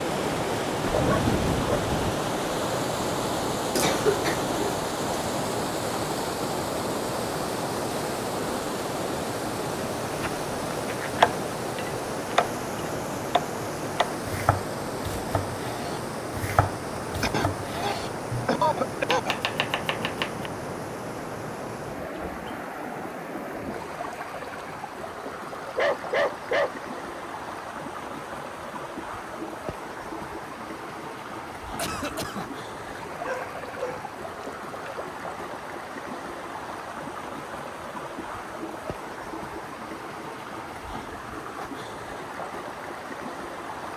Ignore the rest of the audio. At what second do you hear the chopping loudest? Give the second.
11 s.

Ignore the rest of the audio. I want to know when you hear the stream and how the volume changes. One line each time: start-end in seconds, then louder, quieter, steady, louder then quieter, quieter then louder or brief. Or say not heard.
0.0-43.9 quieter.